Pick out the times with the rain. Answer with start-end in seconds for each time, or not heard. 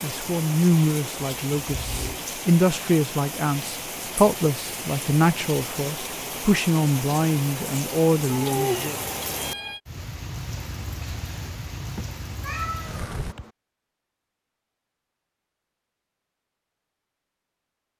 0.0-13.3.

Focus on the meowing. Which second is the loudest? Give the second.
9 s.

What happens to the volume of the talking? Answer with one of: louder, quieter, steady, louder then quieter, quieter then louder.
steady.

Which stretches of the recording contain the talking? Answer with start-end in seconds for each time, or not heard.
0.0-8.9.